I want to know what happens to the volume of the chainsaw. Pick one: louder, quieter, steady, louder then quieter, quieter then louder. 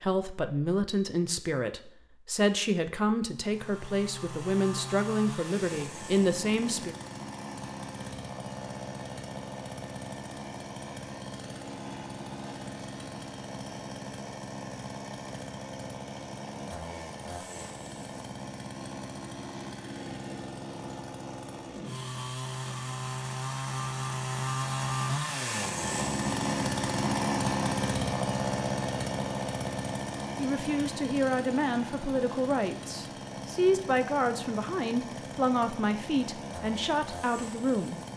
louder then quieter.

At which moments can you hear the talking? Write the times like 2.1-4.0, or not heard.
0.0-7.0, 30.4-38.0.